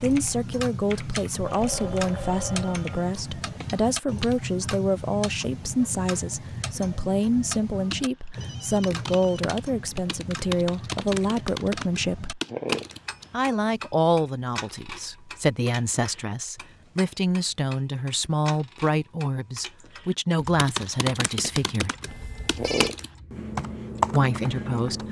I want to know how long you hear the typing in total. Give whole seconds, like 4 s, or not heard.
15 s.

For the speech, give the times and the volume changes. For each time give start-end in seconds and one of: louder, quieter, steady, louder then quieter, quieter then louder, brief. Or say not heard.
0.0-12.4 steady
13.3-21.9 steady
24.1-25.0 brief.